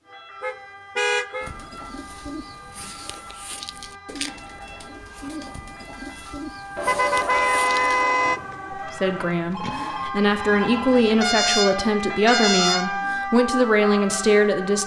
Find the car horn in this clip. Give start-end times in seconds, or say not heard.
0.4-1.5, 6.8-8.4, 11.2-13.0.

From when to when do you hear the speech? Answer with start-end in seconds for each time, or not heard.
8.8-14.8.